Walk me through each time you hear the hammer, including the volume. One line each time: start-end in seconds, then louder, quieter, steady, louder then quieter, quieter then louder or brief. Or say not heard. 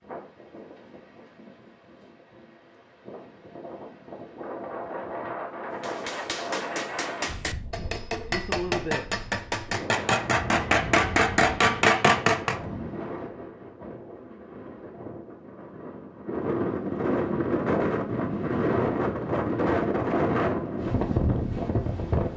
5.8-12.6 louder.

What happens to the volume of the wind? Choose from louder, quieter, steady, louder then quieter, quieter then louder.
louder.